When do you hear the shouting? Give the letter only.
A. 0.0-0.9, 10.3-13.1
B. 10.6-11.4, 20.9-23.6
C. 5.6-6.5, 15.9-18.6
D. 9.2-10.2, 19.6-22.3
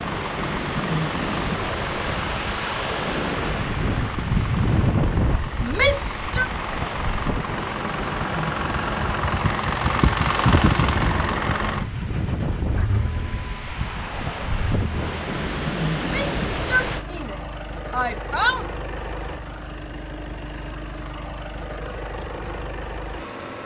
C.